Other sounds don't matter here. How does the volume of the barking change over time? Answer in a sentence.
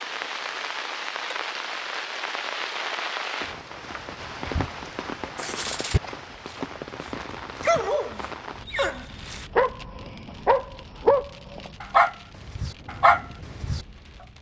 The volume of the barking goes up.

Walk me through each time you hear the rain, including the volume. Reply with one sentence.
The rain can be heard from 0.0 to 14.3 s, getting quieter.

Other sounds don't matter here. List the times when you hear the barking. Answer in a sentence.
You can hear the barking from 5.3 to 13.8 s.